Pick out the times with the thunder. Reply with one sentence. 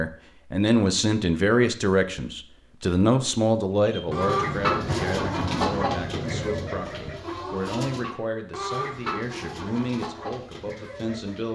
You can hear the thunder from 4.0 to 7.2 s.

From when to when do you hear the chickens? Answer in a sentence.
The chickens can be heard from 3.8 to 11.4 s.